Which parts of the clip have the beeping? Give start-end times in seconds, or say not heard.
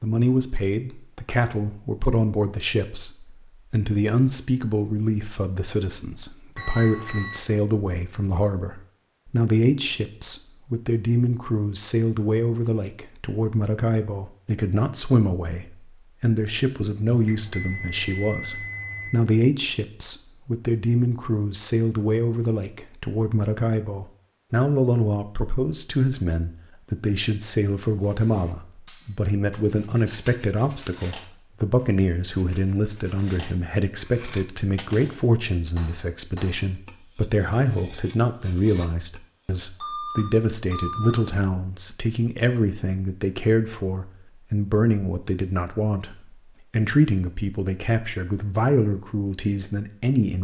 6.5-7.4, 17.1-19.1, 39.8-41.2.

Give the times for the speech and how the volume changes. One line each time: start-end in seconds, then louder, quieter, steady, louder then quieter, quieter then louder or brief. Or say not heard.
0.0-50.3 steady.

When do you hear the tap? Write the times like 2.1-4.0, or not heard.
not heard.